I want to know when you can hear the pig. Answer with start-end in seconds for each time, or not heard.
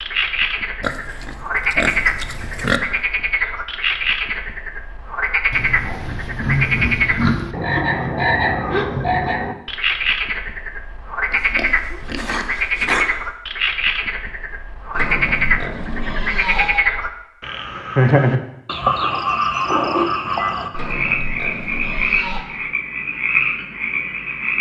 0.8-2.8, 5.5-7.5, 11.3-13.1, 14.9-16.9, 20.7-22.4.